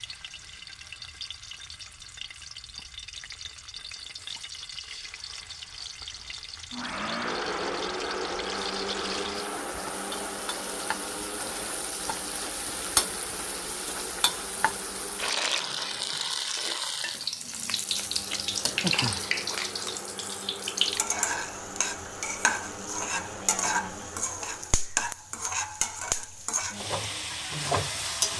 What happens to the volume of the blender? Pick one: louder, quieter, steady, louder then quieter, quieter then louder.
quieter.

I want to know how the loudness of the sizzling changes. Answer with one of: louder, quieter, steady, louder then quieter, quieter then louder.
louder.